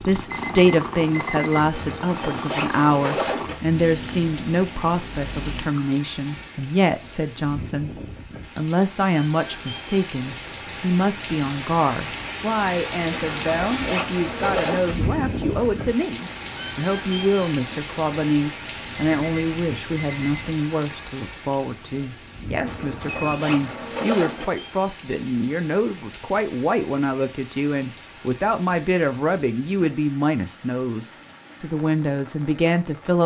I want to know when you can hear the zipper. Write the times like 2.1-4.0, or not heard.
1.7-3.5, 13.1-14.9, 22.6-24.4.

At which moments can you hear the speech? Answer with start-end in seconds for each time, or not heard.
0.0-33.2.